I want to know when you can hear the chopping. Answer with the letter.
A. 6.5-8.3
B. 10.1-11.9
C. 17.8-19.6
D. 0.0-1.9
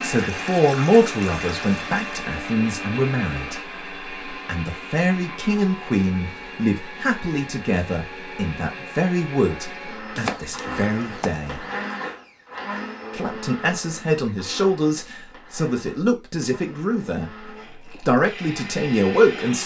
B.